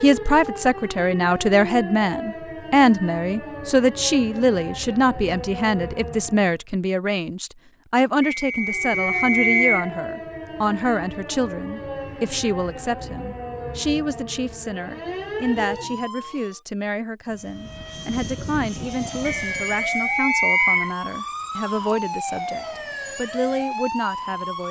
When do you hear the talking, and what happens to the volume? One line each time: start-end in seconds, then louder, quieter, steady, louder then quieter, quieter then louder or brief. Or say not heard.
0.0-24.6 quieter.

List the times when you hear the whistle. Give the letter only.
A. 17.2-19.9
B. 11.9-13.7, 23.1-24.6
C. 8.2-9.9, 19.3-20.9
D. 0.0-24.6
C.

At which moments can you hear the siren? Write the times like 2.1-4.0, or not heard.
0.0-6.6, 8.6-16.6, 18.8-24.6.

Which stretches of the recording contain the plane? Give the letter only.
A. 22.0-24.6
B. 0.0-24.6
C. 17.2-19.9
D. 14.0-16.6
C.